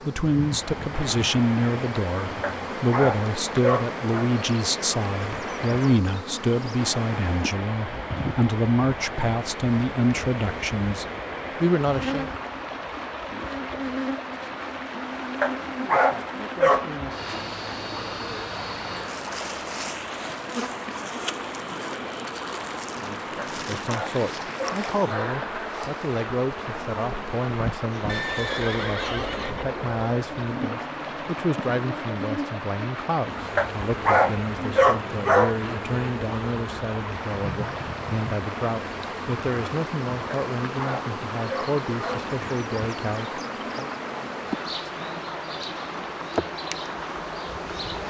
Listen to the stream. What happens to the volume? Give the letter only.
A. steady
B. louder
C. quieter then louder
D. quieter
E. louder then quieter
A.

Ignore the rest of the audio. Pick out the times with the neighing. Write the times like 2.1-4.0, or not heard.
28.1-29.6.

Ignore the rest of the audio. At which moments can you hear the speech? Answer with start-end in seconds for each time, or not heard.
0.1-12.3, 23.0-43.9.